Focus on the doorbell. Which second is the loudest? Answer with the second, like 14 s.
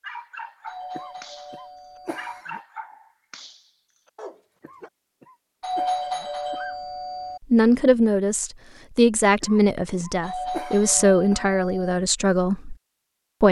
6 s.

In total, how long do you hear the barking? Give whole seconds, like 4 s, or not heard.
5 s.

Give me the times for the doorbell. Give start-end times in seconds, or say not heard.
0.7-2.5, 5.6-7.4, 10.2-12.0.